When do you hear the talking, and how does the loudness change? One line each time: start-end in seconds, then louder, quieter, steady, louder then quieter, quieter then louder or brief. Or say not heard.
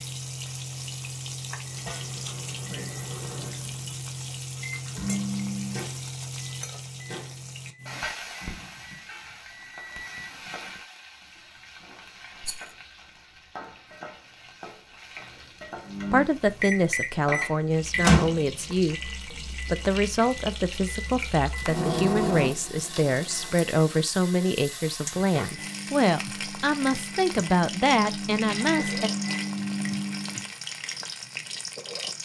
16.1-29.1 steady.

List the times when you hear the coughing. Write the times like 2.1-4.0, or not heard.
not heard.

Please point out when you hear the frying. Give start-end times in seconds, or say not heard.
0.0-32.2.